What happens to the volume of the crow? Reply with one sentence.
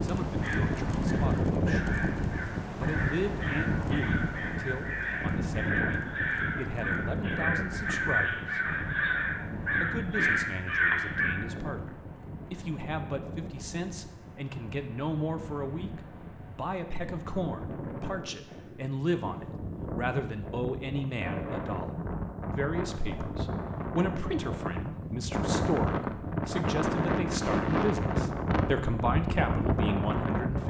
The loudness of the crow goes up.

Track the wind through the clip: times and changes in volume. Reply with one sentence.
The wind can be heard from 0.0 to 30.6 s, getting quieter then louder.